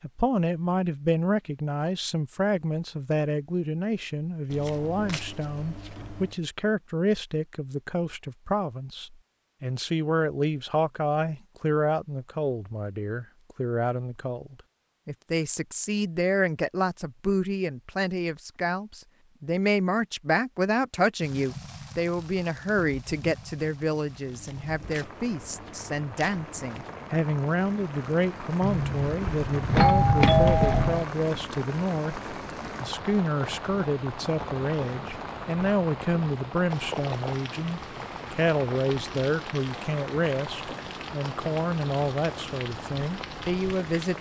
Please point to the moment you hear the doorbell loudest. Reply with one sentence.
The volume of the doorbell peaks at 30 seconds.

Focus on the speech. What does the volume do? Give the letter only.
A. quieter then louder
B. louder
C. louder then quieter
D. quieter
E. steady
E.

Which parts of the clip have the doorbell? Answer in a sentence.
You can hear the doorbell from 28.6 to 31.1 s.